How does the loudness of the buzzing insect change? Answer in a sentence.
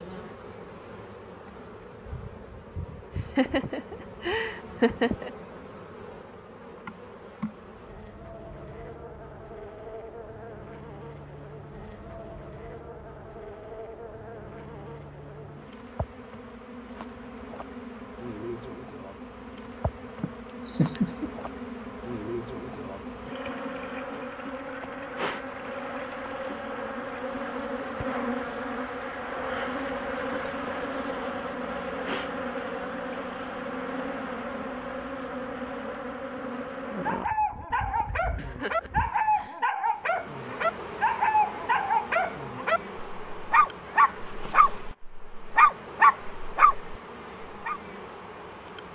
The volume of the buzzing insect goes up, then down.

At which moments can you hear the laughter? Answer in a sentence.
You can hear the laughter from 2.8 to 5.3 s, from 20.2 to 21.5 s and from 38.4 to 39.5 s.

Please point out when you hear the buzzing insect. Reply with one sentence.
You can hear the buzzing insect from 0.0 to 48.9 s.